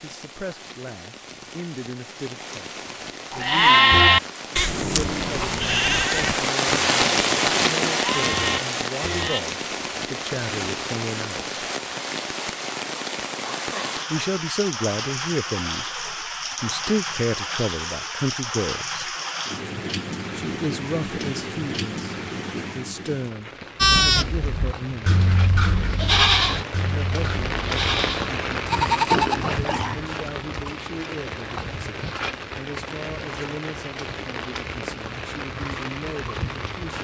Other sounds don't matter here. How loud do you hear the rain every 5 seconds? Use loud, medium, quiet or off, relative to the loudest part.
quiet, loud, medium, medium, medium, medium, medium, medium.